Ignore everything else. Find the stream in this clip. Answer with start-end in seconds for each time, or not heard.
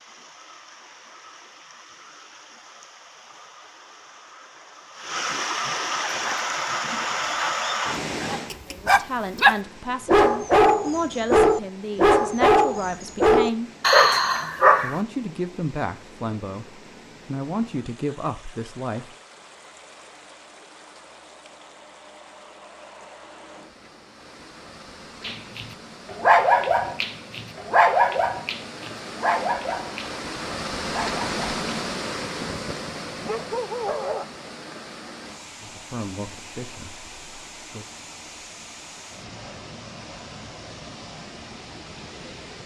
0.0-42.6.